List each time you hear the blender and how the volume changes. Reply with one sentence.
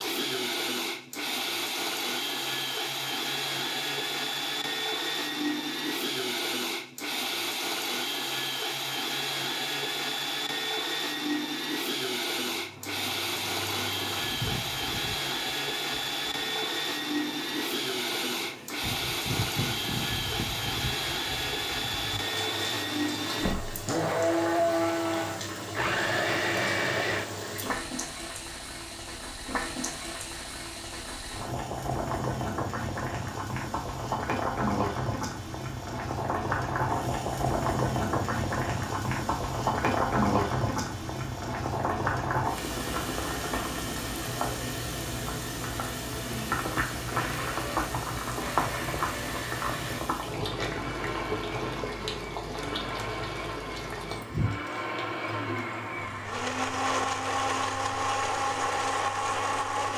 You can hear the blender from 0.0 to 27.4 s, at a steady volume; and from 46.2 to 59.9 s, getting louder.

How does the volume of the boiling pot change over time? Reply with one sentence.
The loudness of the boiling pot goes up, then down.